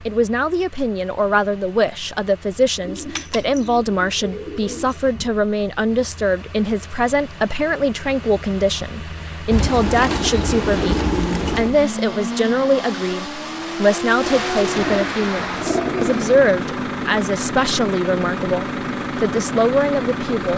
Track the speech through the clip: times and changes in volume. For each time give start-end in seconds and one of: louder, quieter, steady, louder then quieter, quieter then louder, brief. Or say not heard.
0.0-20.5 steady.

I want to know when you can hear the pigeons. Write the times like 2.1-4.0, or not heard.
2.8-5.3, 9.5-11.8, 14.2-16.4.